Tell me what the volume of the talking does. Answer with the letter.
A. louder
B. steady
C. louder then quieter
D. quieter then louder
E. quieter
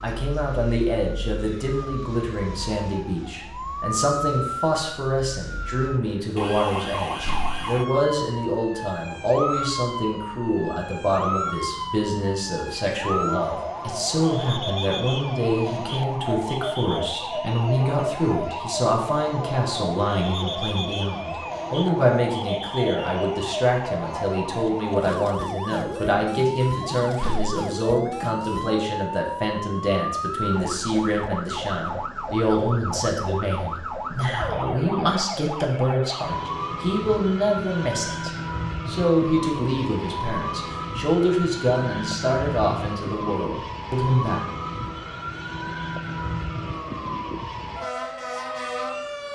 B.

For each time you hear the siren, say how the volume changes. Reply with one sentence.
You can hear the siren from 0.0 to 49.2 s, at a steady volume.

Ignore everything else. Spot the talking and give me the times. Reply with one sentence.
The talking can be heard from 0.0 to 44.5 s.